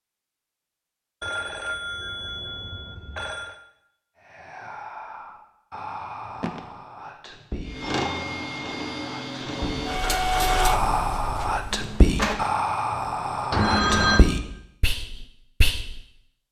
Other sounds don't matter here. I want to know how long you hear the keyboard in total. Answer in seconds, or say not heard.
not heard.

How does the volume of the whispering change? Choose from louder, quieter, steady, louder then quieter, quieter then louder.
louder.